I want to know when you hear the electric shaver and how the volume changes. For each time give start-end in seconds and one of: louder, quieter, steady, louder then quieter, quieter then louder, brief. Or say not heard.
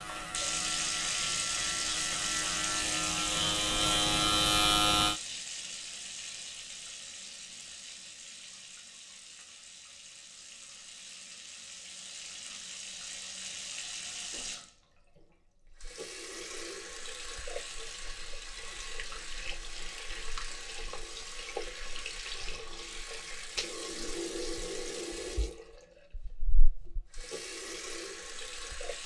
0.0-5.2 louder.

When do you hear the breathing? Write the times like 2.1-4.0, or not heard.
not heard.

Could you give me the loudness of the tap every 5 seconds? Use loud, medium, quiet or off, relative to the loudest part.
loud, medium, medium, medium, medium, medium.